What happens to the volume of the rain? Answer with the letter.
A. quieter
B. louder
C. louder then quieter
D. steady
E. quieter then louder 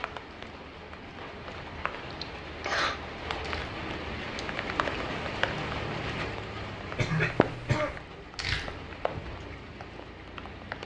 C.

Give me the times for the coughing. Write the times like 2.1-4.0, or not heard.
2.1-3.0, 7.0-8.0.